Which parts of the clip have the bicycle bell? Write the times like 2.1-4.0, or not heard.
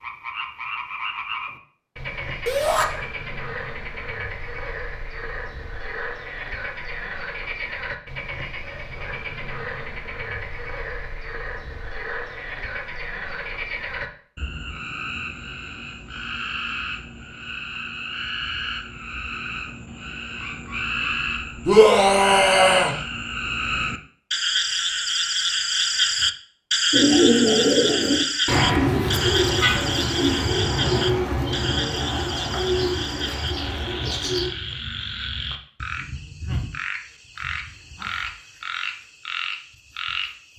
not heard.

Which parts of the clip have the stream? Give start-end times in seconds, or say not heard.
not heard.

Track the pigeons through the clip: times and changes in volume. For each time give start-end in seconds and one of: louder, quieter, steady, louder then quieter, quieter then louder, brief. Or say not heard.
26.9-34.5 quieter.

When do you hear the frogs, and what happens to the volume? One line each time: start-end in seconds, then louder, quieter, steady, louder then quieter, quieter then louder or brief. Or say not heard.
0.0-40.5 louder then quieter.